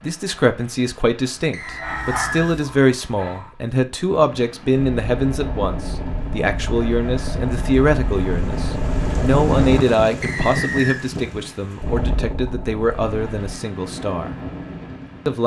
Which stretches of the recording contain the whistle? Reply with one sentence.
You can hear the whistle from 1.5 to 2.5 s and from 10.2 to 11.1 s.